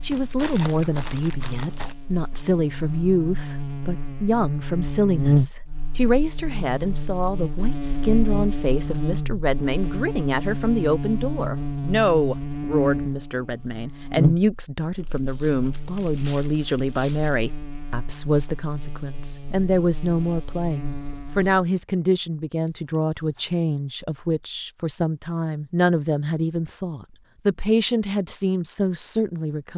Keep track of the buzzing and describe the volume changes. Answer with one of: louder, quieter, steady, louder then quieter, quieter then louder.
louder then quieter.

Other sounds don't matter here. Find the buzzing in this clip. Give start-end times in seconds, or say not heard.
0.0-21.6.